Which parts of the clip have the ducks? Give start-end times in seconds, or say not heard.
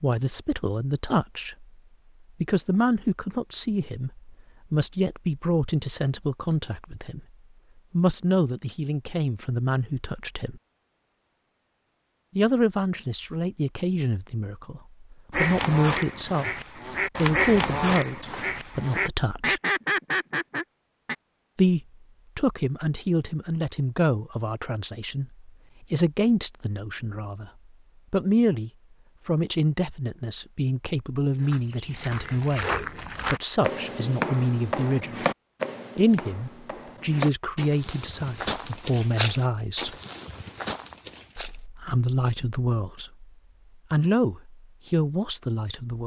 15.3-21.1.